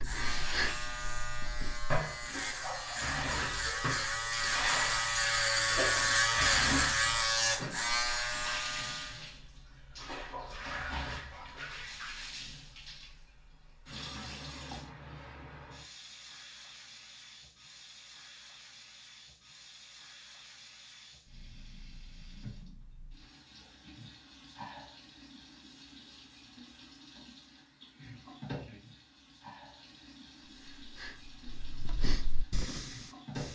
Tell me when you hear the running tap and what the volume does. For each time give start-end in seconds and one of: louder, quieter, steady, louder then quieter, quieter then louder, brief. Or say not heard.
0.2-33.5 quieter.